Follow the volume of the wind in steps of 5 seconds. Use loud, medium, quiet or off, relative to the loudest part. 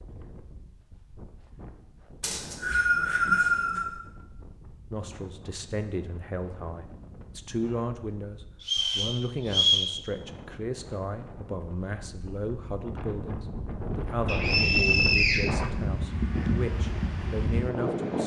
quiet, quiet, medium, loud.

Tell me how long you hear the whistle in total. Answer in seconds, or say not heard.
4 s.